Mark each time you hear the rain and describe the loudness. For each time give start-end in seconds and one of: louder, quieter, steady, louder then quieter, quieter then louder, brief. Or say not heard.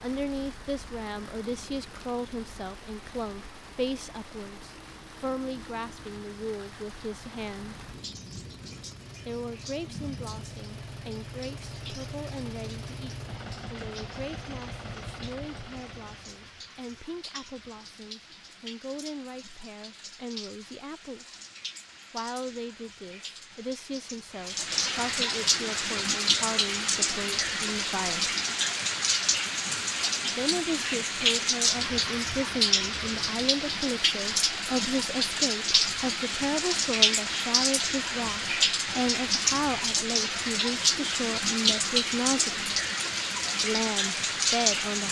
0.0-45.0 louder.